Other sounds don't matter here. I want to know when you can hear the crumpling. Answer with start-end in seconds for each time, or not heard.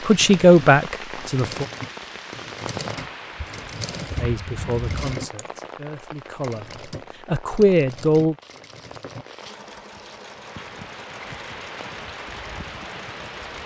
8.4-10.3.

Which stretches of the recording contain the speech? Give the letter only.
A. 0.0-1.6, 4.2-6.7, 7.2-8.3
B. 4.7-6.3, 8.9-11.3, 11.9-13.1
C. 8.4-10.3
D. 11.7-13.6
A.